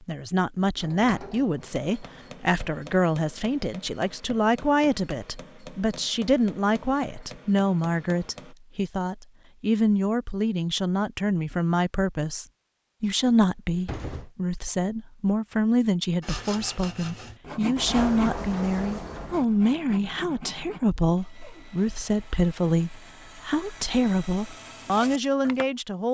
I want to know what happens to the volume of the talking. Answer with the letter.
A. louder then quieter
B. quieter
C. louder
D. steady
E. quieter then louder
D.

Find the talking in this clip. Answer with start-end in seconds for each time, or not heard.
0.0-26.1.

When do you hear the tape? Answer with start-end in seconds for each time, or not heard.
not heard.